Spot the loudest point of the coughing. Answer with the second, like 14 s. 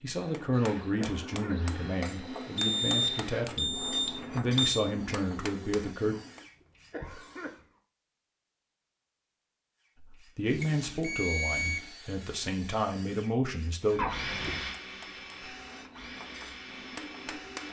14 s.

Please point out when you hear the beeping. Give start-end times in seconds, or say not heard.
2.5-4.8, 10.6-11.9.